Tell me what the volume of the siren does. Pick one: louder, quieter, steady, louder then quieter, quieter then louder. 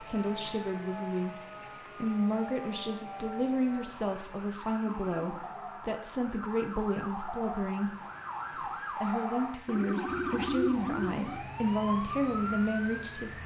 louder.